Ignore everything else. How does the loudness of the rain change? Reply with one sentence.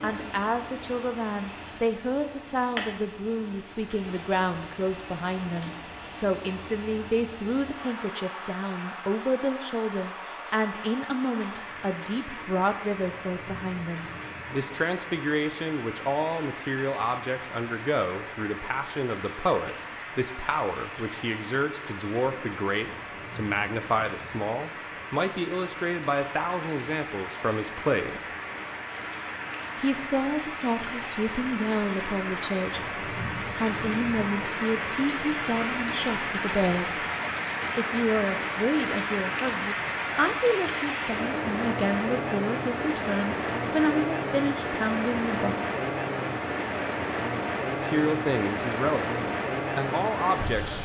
The volume of the rain goes up.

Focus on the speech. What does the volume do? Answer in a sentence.
The loudness of the speech stays about the same.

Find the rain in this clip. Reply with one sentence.
The rain can be heard from 0.0 to 50.8 s.